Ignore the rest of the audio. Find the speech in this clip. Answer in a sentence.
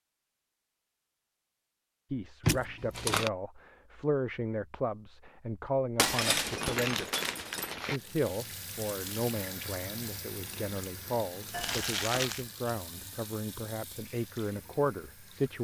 The speech can be heard from 2.1 to 7.1 s and from 7.9 to 15.5 s.